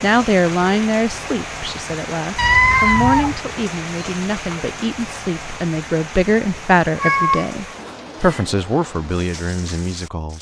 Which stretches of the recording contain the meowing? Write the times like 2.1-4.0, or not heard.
2.4-3.4, 7.0-8.5.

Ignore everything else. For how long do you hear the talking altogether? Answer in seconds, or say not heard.
10 s.